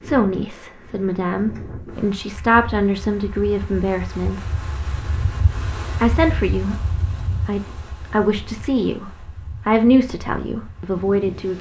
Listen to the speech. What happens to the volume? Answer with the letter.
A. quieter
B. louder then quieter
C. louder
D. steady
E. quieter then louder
D.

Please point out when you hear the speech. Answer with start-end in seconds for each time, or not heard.
0.0-4.6, 6.0-11.5.